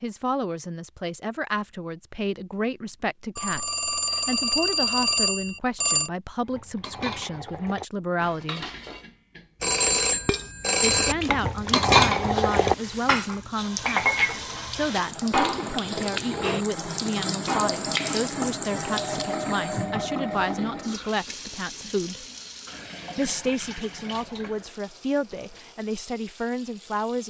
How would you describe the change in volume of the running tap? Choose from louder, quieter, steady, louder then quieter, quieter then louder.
louder then quieter.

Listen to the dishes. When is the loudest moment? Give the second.
12 s.